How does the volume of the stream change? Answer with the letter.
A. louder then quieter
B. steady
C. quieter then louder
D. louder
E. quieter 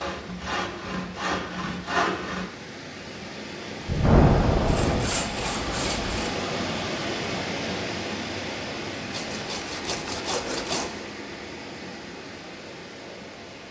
A.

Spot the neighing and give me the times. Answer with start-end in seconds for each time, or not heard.
not heard.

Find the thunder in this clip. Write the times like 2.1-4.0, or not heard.
3.9-5.1.